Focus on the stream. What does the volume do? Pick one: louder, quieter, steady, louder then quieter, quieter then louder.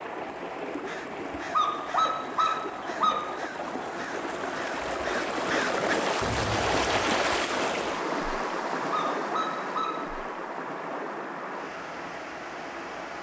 louder then quieter.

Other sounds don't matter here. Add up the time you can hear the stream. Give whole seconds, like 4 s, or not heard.
13 s.